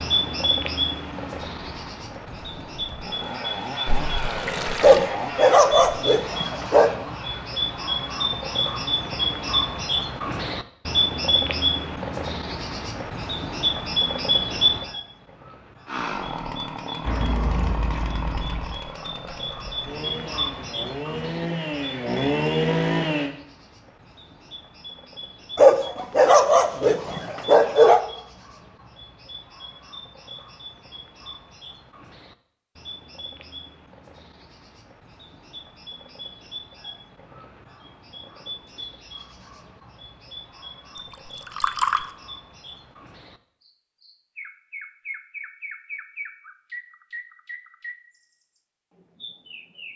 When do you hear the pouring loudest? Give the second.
42 s.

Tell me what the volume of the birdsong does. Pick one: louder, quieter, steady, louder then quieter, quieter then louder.
quieter.